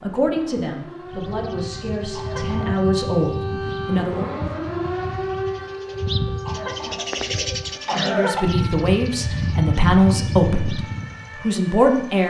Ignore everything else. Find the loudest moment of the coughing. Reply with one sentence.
The loudest moment of the coughing is at 8 seconds.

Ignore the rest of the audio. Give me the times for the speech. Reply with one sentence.
The speech can be heard from 0.0 to 4.3 s and from 7.9 to 12.2 s.